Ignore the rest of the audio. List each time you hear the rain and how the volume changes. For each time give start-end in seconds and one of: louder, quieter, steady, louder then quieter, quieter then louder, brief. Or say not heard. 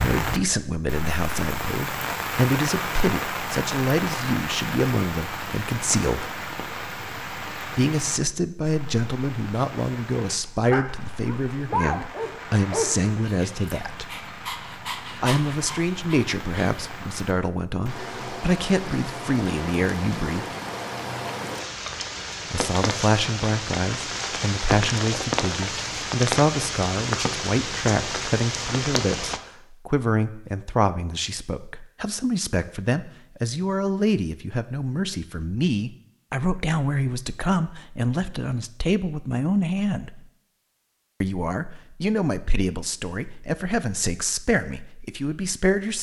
0.0-29.4 quieter then louder.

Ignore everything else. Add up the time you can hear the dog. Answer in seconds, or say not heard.
6 s.